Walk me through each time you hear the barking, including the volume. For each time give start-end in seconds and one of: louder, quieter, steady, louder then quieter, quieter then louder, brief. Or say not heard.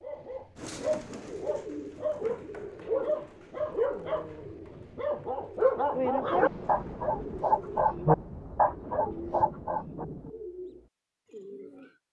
0.0-10.1 louder.